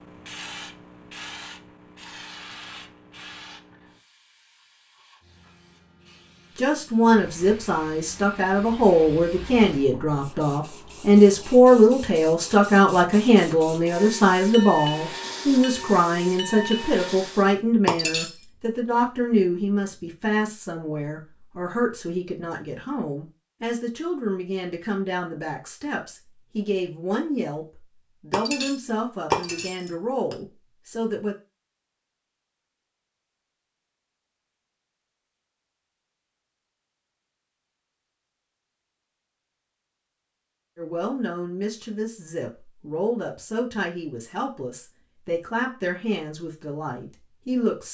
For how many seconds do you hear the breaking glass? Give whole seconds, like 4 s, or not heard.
3 s.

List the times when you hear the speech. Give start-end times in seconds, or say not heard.
6.5-31.4, 40.8-47.8.